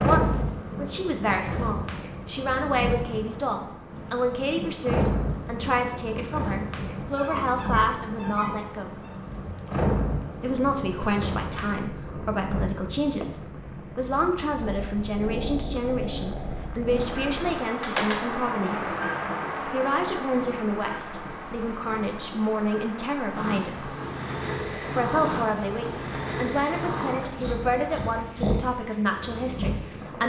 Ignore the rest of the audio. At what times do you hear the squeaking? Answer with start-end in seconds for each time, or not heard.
7.2-9.1.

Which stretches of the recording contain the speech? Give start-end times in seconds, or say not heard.
0.0-9.0, 10.4-18.9, 19.6-23.9, 24.9-30.2.